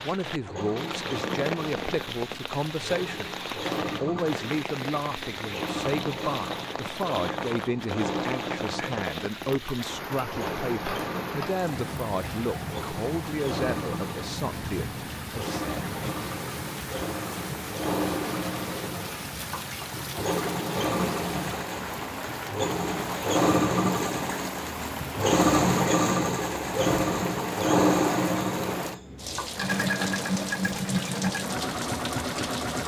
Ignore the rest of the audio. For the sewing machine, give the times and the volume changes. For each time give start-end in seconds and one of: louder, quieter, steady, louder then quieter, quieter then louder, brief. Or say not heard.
0.1-32.8 louder.